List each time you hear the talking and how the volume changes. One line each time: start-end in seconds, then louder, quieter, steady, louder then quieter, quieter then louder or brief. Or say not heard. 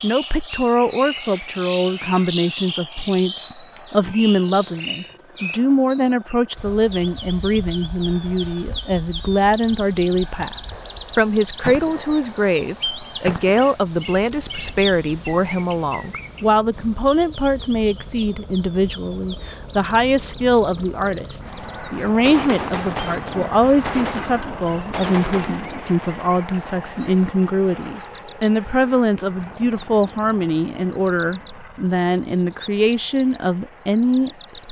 0.0-10.6 steady
11.2-34.6 steady.